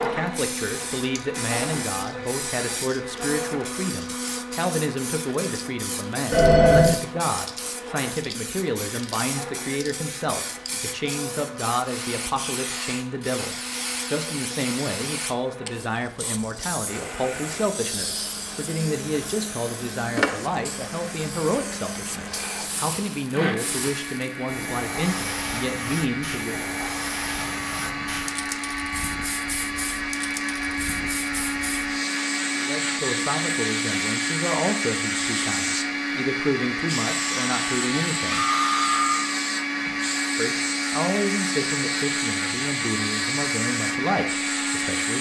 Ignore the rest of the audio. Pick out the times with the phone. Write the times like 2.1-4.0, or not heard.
6.3-7.0, 38.3-39.2.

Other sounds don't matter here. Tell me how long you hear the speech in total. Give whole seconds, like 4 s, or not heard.
37 s.